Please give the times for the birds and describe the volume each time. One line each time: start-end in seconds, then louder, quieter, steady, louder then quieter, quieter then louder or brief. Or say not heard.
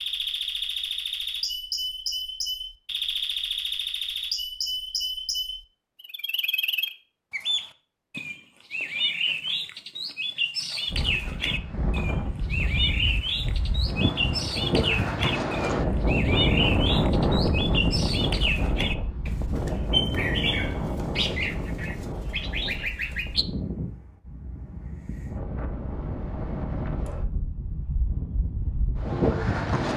0.0-23.4 steady.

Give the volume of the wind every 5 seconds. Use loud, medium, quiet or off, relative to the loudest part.
off, off, medium, loud, medium, medium.